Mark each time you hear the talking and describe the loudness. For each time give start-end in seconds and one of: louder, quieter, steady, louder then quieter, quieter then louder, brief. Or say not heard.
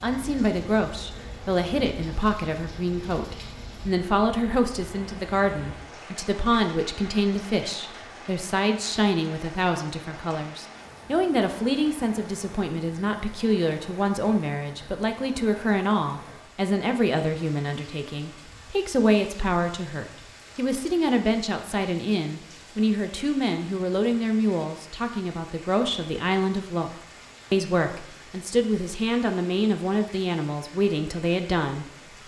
0.0-32.2 steady.